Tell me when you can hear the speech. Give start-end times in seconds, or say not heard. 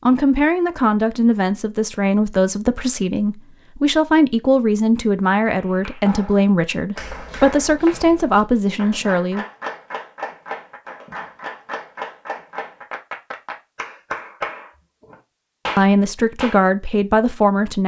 0.1-9.4, 15.8-17.8.